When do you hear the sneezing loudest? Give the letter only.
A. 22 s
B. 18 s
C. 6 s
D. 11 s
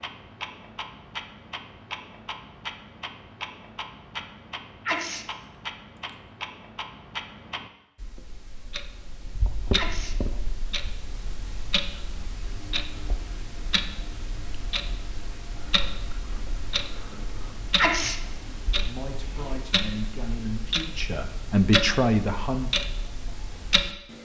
B.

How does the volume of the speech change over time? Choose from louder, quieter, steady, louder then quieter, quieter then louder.
louder.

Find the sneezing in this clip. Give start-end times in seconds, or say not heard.
4.8-5.2, 9.8-10.2, 17.8-18.2.